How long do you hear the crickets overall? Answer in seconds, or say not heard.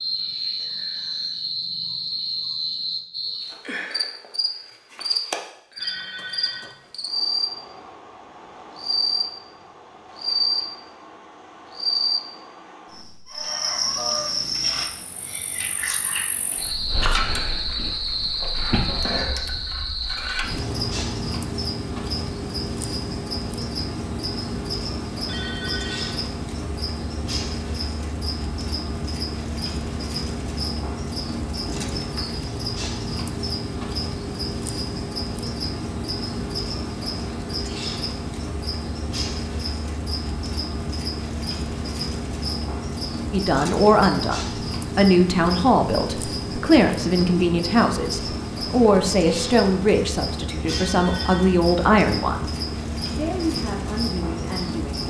55 s.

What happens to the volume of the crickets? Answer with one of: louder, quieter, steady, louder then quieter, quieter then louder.
steady.